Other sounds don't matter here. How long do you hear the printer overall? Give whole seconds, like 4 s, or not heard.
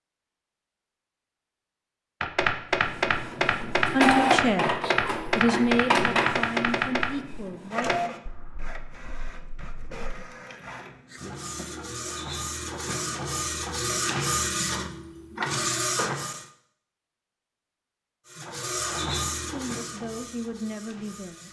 17 s.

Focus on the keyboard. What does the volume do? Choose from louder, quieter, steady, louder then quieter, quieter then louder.
quieter.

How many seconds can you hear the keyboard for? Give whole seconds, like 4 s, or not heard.
8 s.